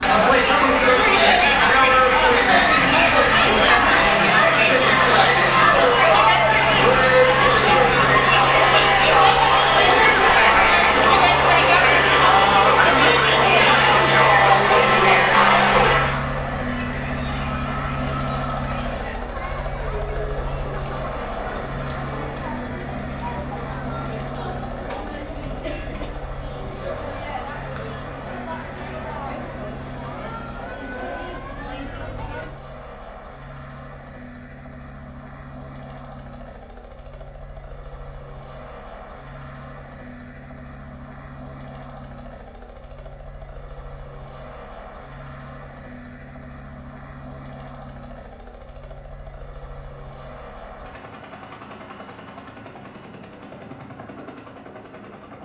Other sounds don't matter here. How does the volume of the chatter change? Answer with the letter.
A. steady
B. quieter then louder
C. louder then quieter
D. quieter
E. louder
D.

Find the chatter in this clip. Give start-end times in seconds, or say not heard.
0.0-32.5.